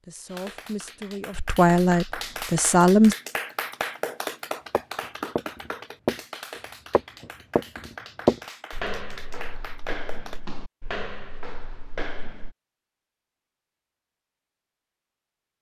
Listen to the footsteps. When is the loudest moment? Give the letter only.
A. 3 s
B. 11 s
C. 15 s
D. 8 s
D.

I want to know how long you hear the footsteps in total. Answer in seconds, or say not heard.
8 s.